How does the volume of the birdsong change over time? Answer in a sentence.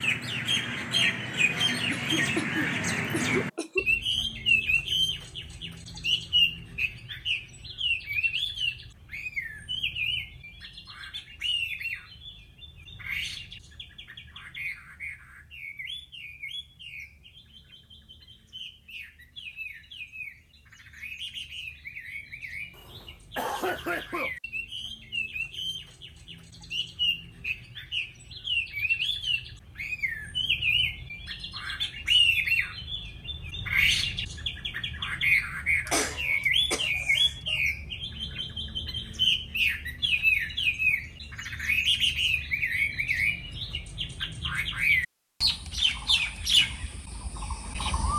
The loudness of the birdsong goes down, then up.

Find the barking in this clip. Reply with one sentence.
You can't hear the barking here.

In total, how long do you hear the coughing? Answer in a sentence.
The coughing can be heard for 5 seconds in total.